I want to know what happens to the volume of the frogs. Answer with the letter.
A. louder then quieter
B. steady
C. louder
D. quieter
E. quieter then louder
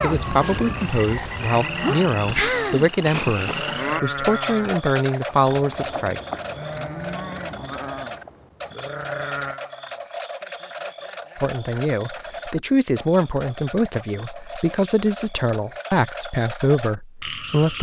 D.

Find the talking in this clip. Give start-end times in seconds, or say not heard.
0.0-6.2, 11.3-17.7.